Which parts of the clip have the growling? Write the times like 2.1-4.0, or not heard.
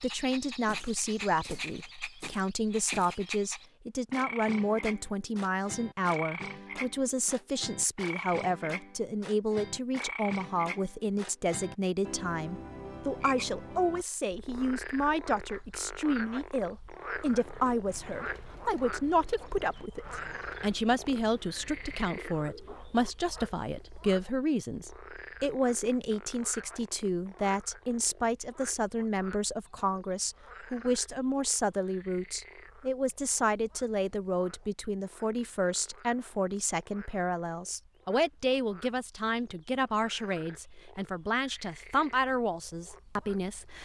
not heard.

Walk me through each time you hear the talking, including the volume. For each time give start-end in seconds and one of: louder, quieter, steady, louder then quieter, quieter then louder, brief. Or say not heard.
0.0-43.8 steady.